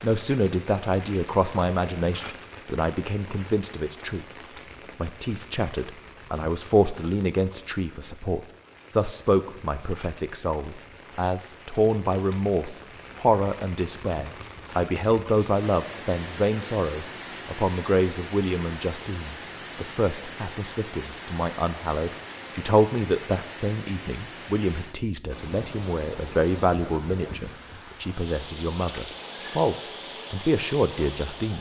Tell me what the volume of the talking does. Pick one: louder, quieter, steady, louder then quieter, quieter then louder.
steady.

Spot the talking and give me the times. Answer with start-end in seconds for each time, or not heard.
0.0-4.2, 5.0-31.5.